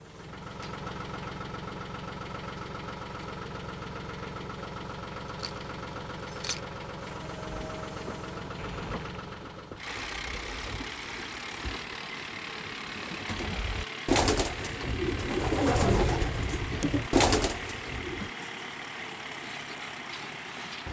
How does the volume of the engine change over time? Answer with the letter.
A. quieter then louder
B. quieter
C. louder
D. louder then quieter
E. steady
E.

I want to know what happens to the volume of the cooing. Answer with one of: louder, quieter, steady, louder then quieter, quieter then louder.
louder.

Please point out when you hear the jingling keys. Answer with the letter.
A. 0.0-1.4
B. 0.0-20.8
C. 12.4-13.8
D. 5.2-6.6
D.